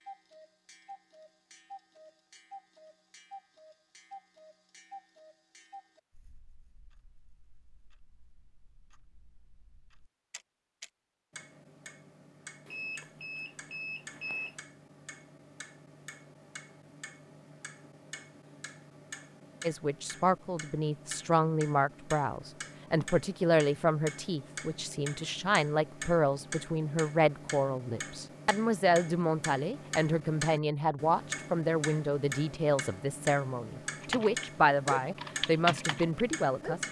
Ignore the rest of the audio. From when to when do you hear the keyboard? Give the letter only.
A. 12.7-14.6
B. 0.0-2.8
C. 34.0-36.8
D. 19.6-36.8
C.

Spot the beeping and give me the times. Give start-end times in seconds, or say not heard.
12.7-14.6.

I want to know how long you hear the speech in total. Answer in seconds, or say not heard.
17 s.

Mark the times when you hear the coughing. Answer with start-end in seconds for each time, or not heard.
not heard.